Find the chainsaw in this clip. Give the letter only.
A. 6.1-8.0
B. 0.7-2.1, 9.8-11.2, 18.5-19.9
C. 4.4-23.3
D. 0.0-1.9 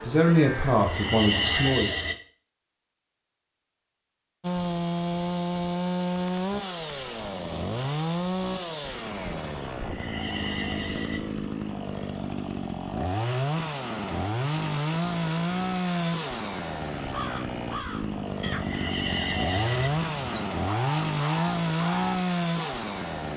C.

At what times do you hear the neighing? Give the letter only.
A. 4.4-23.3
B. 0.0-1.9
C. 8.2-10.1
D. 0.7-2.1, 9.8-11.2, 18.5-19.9
D.